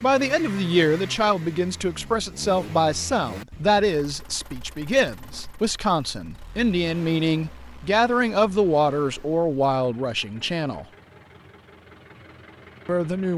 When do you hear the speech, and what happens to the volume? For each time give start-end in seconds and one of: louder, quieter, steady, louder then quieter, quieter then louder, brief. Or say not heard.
0.0-10.8 steady
12.8-13.3 brief.